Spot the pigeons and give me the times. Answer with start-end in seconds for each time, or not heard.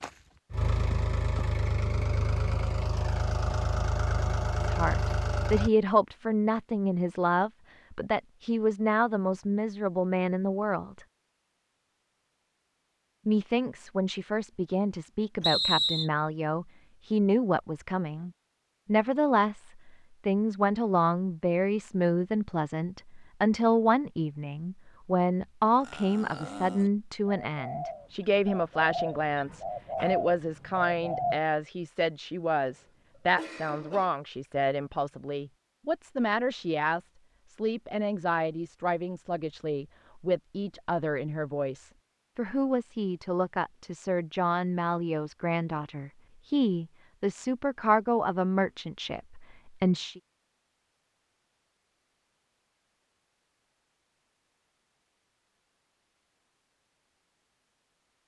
25.8-31.4.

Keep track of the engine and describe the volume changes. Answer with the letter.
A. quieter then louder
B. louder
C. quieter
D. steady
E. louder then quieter
D.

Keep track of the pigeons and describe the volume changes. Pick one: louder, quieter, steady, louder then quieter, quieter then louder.
louder.